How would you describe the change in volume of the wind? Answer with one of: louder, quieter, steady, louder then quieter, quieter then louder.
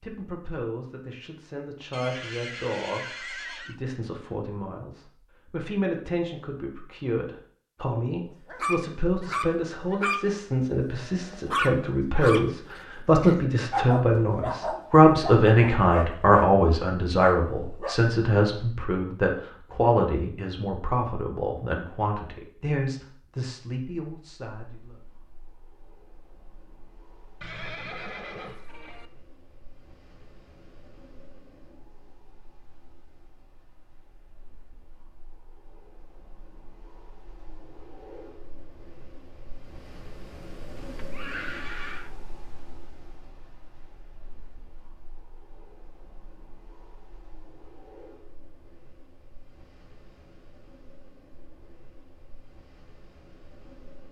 louder then quieter.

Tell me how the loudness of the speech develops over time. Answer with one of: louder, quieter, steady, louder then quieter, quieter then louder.
louder then quieter.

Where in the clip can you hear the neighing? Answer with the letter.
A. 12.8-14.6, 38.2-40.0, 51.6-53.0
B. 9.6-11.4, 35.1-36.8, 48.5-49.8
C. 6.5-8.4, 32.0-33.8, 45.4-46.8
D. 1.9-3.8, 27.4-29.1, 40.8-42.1
D.